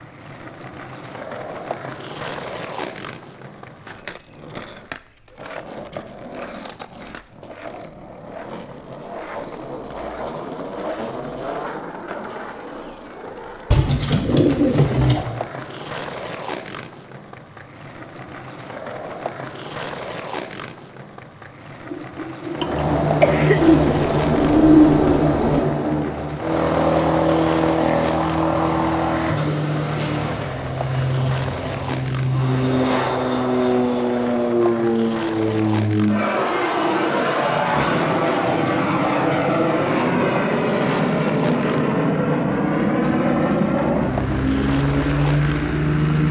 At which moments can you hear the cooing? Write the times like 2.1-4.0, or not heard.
13.7-15.2, 23.6-25.6.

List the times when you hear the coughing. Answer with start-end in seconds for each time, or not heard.
21.9-23.6.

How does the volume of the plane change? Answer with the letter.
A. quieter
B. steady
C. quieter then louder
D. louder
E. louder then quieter
B.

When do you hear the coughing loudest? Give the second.
23 s.